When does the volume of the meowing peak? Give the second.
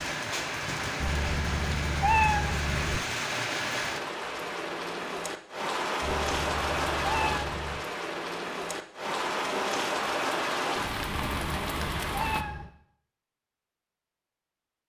2 s.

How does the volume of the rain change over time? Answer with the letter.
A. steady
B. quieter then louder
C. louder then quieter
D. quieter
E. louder
A.